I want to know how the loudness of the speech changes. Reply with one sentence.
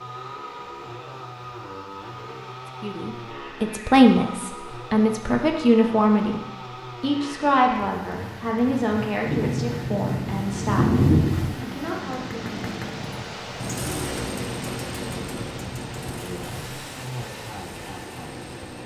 The loudness of the speech goes down.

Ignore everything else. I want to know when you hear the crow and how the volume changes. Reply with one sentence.
The crow can't be heard in this clip.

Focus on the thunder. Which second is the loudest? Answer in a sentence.
The volume of the thunder peaks at 11 seconds.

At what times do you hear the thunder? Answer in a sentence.
You can hear the thunder from 9.2 to 11.6 s.